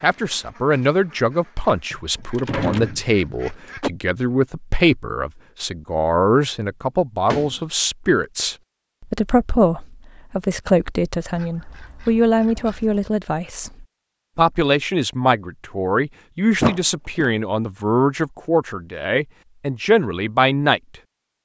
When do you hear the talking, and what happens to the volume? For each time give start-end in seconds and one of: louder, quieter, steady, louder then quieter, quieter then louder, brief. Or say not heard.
0.0-20.8 steady.